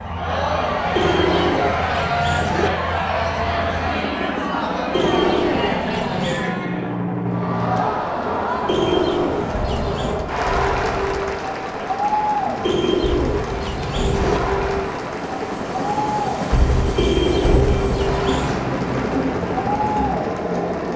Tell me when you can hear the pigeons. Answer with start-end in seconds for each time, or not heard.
0.9-2.7, 4.9-6.5, 8.7-10.2, 12.6-14.4, 16.9-18.6.